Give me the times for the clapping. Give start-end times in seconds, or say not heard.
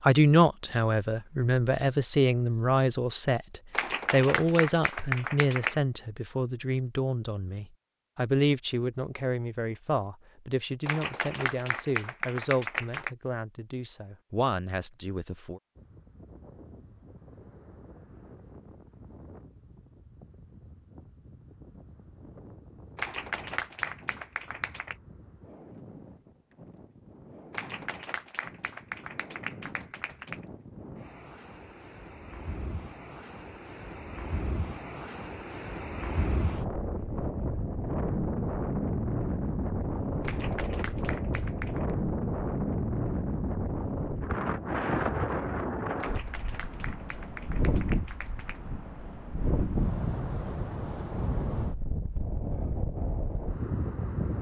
3.7-5.8, 10.8-13.1, 22.9-24.9, 27.5-30.4, 40.2-41.9, 46.0-48.6.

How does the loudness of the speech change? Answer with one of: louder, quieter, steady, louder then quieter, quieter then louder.
quieter.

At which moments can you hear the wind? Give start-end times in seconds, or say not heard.
15.8-54.3.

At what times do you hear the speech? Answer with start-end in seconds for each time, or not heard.
0.0-15.6.